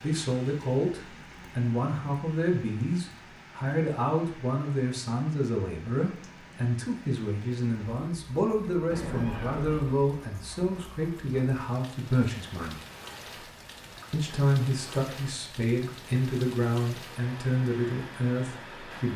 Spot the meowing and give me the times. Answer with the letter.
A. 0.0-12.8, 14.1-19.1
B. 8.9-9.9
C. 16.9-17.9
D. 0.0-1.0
B.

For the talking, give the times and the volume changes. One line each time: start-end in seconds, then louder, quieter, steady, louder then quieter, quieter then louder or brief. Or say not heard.
0.0-12.8 steady
14.1-19.1 steady.